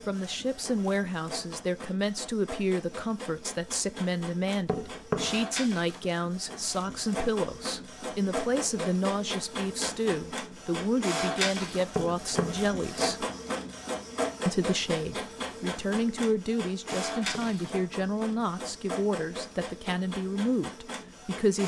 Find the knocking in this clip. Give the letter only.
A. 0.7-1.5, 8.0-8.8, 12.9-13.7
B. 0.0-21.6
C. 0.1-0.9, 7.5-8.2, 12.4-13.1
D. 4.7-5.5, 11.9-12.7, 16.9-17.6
D.